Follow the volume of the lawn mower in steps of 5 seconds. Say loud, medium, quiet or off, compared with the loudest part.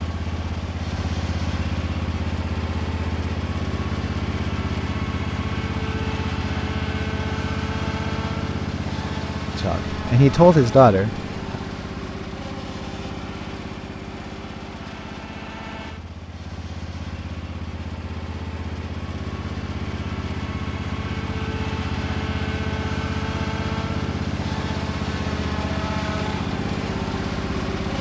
loud, loud, medium, medium, loud, loud.